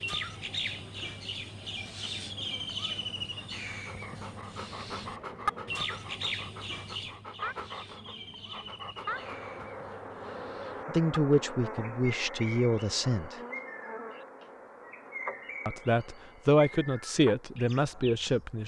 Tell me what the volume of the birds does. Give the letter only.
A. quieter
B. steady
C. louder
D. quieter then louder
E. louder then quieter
A.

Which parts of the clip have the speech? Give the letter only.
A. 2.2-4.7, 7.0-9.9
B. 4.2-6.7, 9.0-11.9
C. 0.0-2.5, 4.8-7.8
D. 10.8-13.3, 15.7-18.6
D.